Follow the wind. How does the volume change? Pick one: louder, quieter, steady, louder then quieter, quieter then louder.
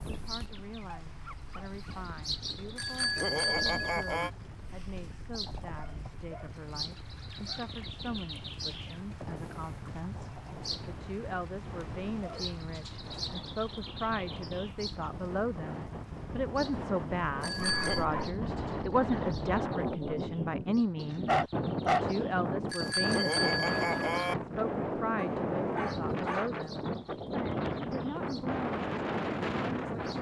louder.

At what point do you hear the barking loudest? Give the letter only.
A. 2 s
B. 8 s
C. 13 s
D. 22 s
D.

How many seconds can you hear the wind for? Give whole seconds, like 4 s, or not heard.
30 s.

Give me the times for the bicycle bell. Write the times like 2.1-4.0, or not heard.
2.8-4.3, 17.4-18.1, 22.7-24.4.